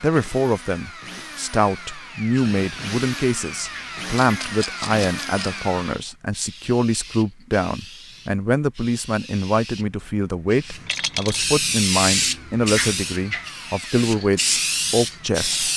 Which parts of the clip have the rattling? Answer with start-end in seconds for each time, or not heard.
4.2-5.6, 10.8-11.4.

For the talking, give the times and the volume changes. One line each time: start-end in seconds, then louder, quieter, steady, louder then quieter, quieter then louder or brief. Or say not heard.
0.0-15.7 steady.